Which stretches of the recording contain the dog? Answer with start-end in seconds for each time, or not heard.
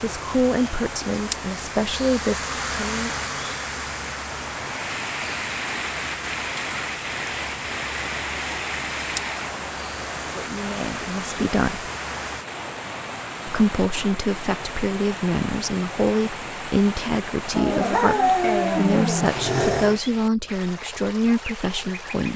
17.5-20.0.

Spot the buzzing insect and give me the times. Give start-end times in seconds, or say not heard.
0.0-12.4.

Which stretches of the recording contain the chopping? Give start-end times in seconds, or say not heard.
not heard.